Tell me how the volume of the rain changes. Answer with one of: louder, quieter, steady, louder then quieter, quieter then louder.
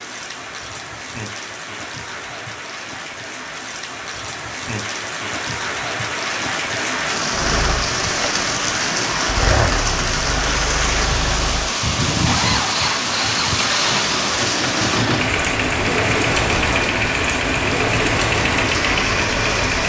louder.